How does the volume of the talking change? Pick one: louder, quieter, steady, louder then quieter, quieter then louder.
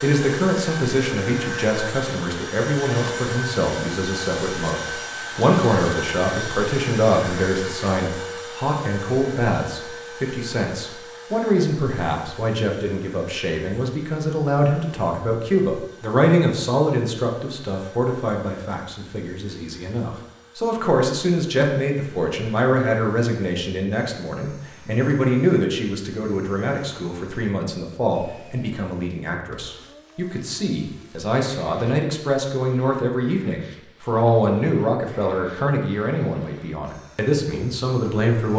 steady.